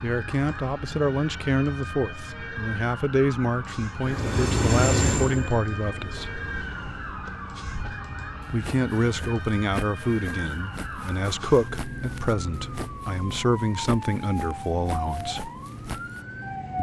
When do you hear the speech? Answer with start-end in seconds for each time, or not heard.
0.0-6.4, 8.5-15.5.